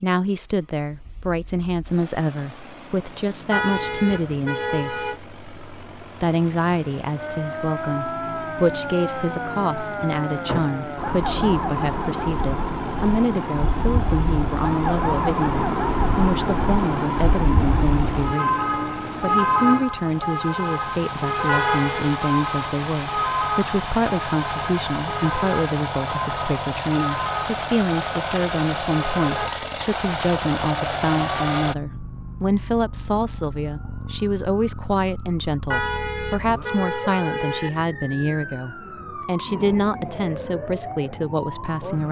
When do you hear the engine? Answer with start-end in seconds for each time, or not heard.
0.0-31.8.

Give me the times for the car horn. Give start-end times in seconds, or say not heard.
3.5-5.2, 21.4-22.1, 35.7-37.7.